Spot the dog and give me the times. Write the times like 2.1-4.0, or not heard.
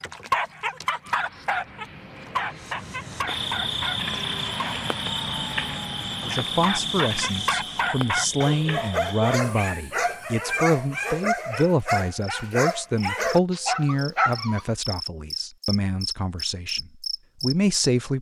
0.0-4.8, 6.5-14.7.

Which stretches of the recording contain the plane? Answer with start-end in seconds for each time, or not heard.
0.0-8.0.